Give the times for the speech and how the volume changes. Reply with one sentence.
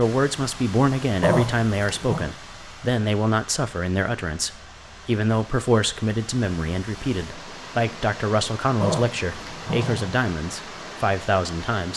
The speech can be heard from 0.0 to 11.9 s, at a steady volume.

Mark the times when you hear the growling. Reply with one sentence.
The growling can be heard from 1.2 to 2.3 s and from 8.8 to 10.2 s.